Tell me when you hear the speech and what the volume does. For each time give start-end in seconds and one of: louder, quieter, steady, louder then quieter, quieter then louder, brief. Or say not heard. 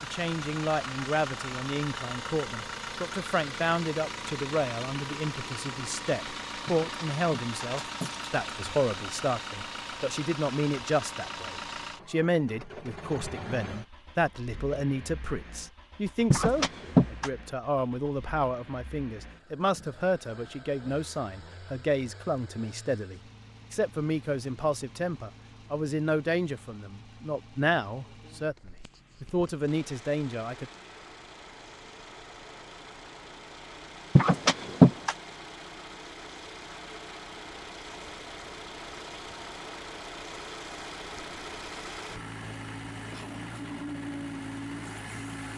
0.0-30.7 steady.